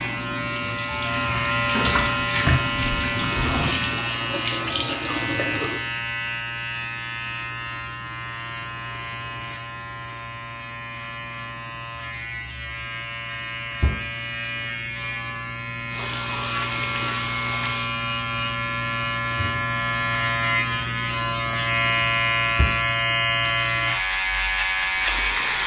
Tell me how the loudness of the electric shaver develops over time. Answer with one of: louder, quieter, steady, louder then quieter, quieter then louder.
quieter then louder.